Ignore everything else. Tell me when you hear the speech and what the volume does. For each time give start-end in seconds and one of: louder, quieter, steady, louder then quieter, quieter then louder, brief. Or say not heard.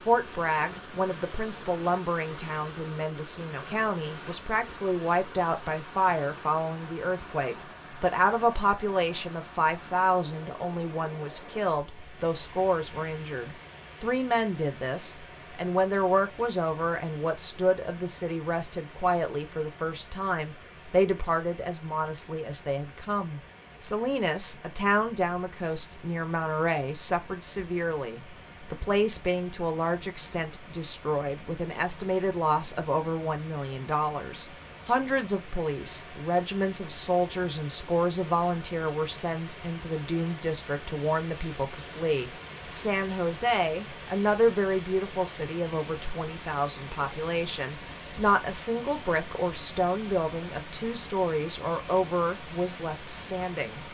0.0-53.8 steady.